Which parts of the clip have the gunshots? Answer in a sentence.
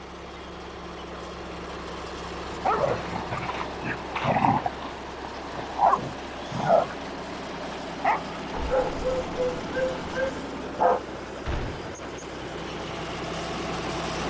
The gunshots can be heard from 11.4 to 11.9 s.